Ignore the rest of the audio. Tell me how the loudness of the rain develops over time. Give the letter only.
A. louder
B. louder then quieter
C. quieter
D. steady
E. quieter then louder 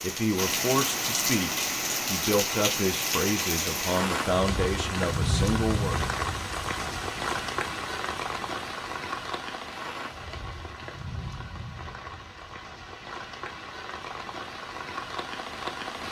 C.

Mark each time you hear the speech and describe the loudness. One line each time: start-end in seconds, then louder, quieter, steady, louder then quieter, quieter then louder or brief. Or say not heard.
0.0-6.0 steady.